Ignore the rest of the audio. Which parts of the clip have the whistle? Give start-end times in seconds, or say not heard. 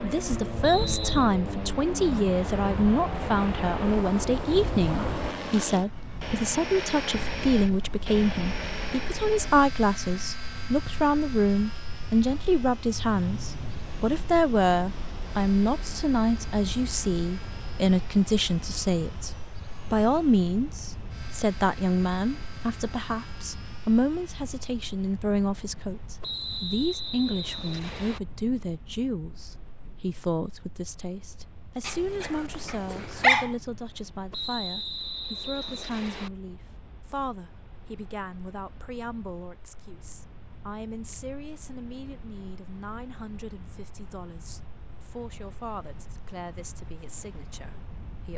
0.6-1.2, 26.2-28.2, 34.3-36.3.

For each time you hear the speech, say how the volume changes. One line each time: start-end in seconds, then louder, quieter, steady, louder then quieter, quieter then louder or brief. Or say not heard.
0.0-48.3 quieter.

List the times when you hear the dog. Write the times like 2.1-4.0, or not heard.
31.9-33.5.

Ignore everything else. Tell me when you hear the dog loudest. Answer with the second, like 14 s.
33 s.